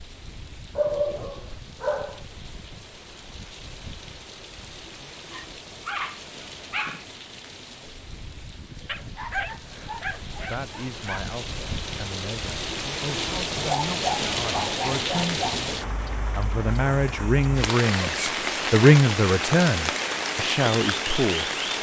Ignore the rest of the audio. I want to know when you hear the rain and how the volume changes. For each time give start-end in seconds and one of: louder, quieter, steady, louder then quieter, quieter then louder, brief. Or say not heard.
0.0-21.7 louder.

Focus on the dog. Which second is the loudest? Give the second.
1 s.